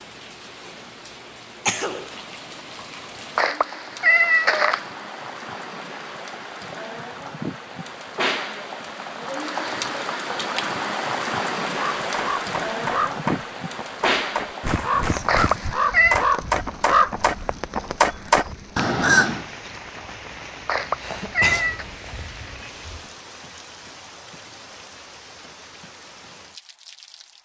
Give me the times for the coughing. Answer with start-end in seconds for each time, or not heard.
1.6-2.1, 21.0-23.1.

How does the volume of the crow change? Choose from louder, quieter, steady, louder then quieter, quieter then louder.
louder.